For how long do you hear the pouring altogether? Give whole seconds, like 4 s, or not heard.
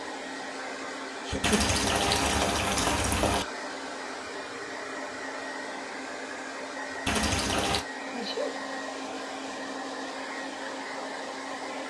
3 s.